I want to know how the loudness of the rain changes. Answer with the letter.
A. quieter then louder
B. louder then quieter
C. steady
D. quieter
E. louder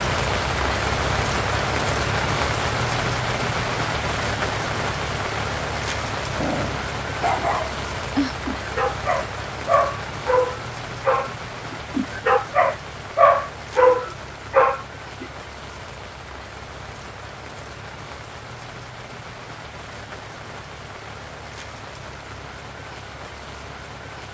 D.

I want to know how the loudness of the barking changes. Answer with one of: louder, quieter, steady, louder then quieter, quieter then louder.
louder.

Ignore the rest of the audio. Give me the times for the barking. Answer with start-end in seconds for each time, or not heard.
6.3-15.2.